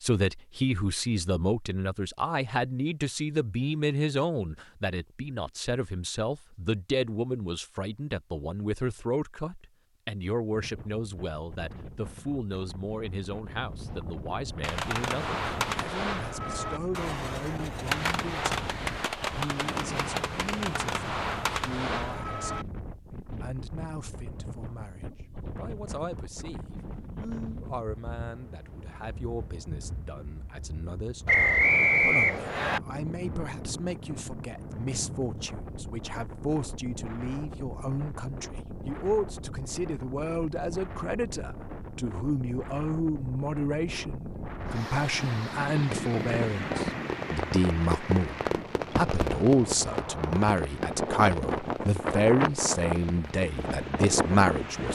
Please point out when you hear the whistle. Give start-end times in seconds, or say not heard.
31.2-32.8.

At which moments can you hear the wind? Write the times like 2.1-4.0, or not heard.
10.5-54.9.